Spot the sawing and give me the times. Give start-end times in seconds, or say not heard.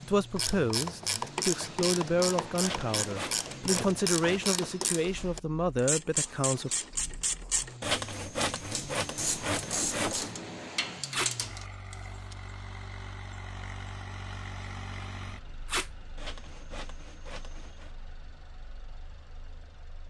2.6-4.6, 7.8-10.3, 16.1-17.9.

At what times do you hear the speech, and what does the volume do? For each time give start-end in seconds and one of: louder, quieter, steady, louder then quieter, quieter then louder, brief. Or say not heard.
0.0-6.7 steady.